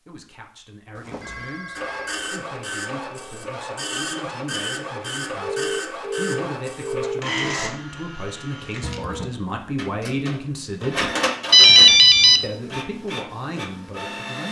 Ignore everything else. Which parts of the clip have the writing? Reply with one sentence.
The writing can't be heard in this clip.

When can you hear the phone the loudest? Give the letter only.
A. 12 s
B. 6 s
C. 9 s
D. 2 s
A.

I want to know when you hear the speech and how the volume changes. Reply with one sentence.
You can hear the speech from 0.1 to 11.1 s, getting louder; and briefly from 12.4 to 14.4 s.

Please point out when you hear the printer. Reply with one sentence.
You can hear the printer from 1.8 to 14.4 s.